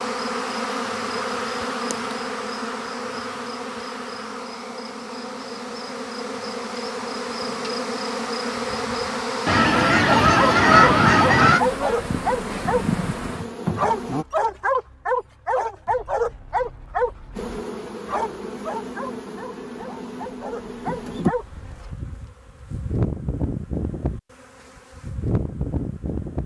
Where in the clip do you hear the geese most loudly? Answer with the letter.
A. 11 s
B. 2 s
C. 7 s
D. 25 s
A.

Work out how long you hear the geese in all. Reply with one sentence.
You can hear the geese for 2 seconds altogether.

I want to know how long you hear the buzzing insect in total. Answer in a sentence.
You can hear the buzzing insect for 23 seconds altogether.